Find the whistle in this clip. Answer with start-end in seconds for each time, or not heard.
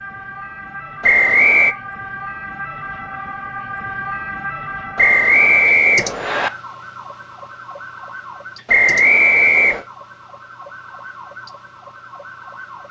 1.0-1.8, 5.0-6.5, 8.7-9.8.